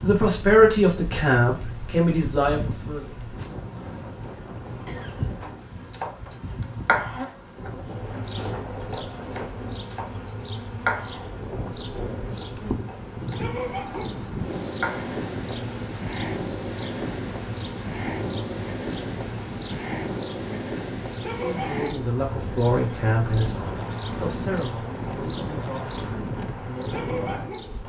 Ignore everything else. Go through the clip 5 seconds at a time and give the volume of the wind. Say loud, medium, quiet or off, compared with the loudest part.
medium, medium, loud, loud, loud, loud.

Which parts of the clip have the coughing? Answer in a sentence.
The coughing can be heard from 4.8 to 5.4 s.